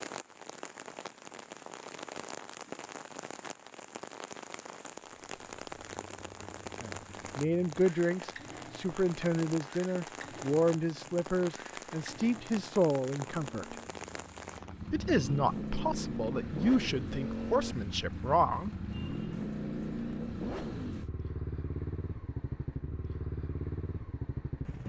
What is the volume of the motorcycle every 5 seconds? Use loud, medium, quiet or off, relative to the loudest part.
off, quiet, quiet, loud, loud.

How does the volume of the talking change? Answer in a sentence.
The loudness of the talking stays about the same.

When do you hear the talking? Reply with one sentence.
The talking can be heard from 6.8 to 13.8 s and from 14.9 to 18.7 s.